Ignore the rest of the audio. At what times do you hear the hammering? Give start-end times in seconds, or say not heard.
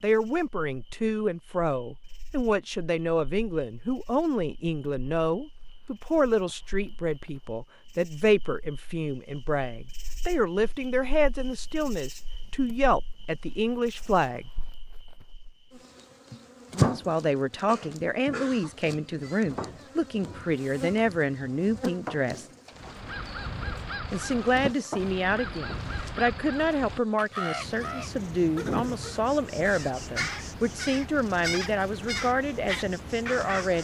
not heard.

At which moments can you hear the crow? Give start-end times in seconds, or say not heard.
22.8-33.7.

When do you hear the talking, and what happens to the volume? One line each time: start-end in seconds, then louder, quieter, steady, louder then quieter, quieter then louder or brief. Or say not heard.
0.0-14.5 steady
16.8-22.4 steady
24.1-33.7 steady.